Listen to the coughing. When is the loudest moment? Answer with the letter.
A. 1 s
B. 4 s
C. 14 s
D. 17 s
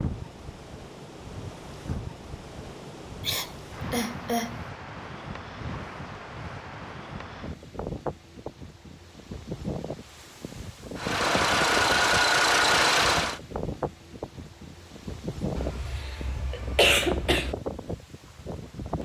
D.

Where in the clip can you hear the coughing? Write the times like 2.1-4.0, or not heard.
3.2-4.6, 15.6-17.6.